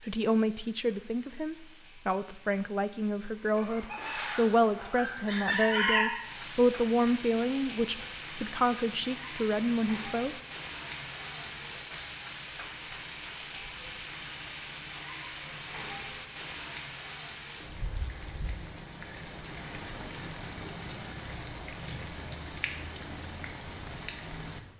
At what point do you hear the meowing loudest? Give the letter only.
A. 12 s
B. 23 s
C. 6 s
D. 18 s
C.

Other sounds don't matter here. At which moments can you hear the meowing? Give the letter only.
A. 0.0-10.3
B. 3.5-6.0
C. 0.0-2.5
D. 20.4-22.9
B.